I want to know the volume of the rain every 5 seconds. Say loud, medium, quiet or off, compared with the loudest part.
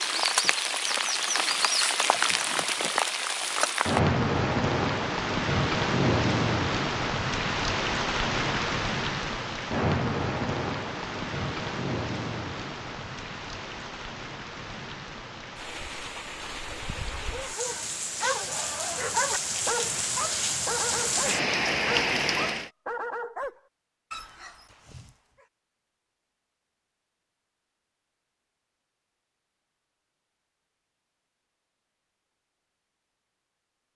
loud, loud, medium, medium, loud, off, off.